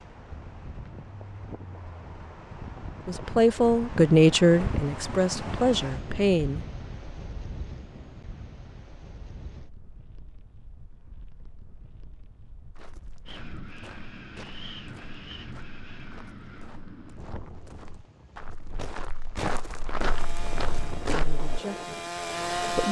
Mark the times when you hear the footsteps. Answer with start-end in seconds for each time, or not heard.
12.8-21.4.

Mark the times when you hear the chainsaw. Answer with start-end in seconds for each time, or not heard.
19.9-22.8.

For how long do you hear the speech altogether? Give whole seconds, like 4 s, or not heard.
5 s.